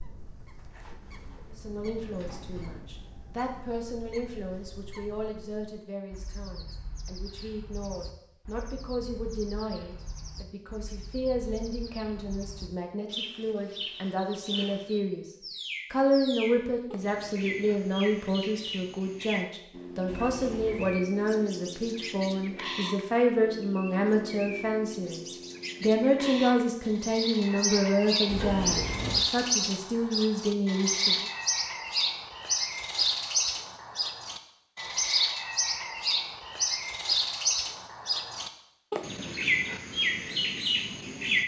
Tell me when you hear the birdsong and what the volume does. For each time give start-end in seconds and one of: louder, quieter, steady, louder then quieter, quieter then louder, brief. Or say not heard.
0.0-41.4 louder.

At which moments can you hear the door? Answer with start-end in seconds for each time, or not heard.
0.8-3.0, 20.1-21.0, 28.2-29.2.